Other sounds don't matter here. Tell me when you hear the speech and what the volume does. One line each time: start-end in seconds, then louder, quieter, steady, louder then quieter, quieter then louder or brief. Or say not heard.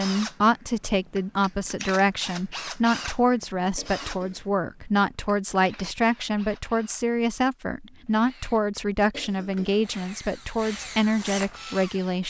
0.0-12.2 steady.